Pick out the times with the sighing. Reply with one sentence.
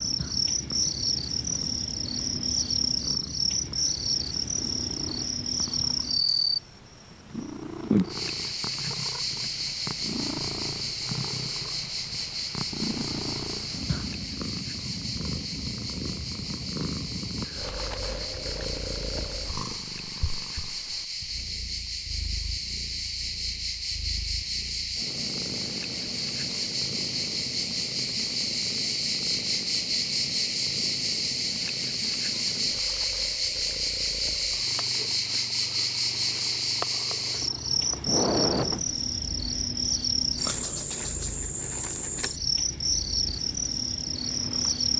You can hear the sighing from 38.0 to 38.9 s.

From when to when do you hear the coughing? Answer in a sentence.
The coughing can't be heard in this clip.